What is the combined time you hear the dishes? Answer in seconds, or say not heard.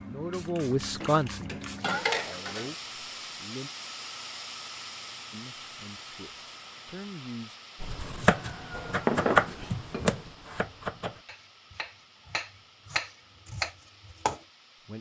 4 s.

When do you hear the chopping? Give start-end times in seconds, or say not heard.
7.8-14.3.